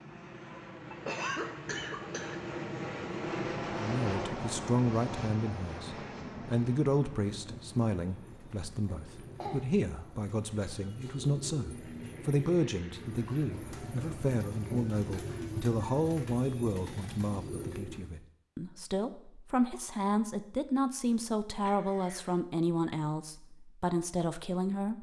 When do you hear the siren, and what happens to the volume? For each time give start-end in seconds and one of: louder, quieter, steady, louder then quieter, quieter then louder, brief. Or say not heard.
not heard.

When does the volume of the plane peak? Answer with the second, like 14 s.
4 s.